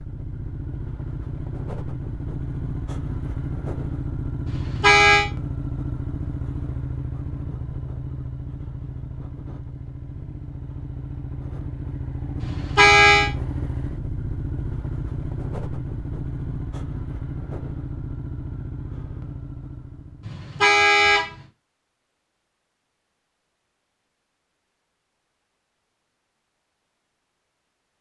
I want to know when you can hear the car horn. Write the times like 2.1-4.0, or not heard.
4.5-5.2, 12.4-13.3, 20.2-21.3.